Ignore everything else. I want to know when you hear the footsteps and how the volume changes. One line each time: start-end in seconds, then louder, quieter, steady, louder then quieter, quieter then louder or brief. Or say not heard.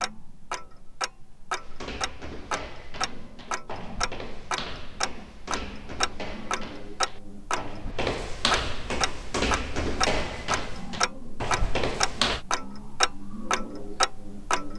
1.6-12.4 louder.